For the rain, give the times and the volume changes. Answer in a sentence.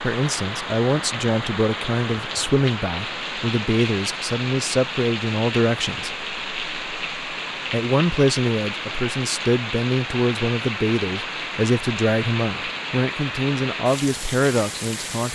You can hear the rain from 0.0 to 15.2 s, at a steady volume.